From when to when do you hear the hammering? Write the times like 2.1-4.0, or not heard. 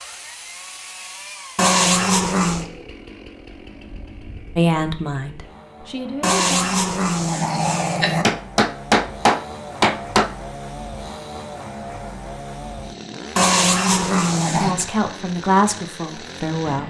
8.2-10.3.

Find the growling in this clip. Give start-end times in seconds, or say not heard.
1.6-2.6, 6.2-8.2, 13.3-14.8.